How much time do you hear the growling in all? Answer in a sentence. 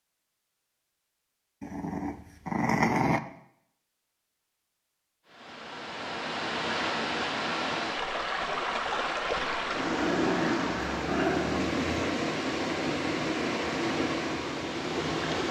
You can hear the growling for 4 seconds altogether.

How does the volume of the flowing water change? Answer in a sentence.
The volume of the flowing water stays about the same.